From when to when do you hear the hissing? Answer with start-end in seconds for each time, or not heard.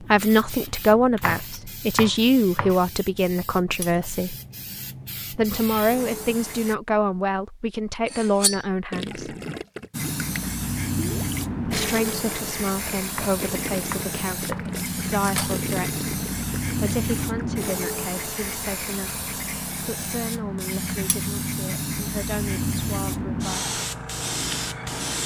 0.0-6.8, 9.9-25.2.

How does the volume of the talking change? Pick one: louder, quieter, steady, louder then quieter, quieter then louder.
quieter.